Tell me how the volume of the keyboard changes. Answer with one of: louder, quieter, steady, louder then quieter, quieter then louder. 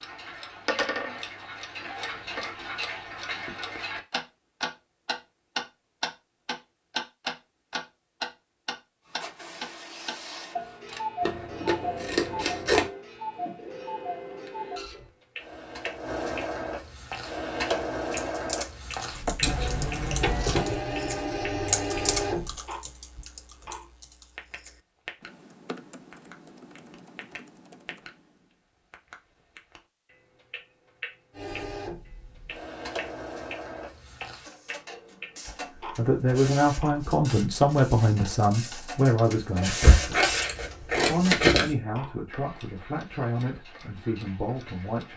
louder then quieter.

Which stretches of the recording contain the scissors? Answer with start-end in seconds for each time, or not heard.
11.2-12.8, 19.4-20.6, 39.8-41.8.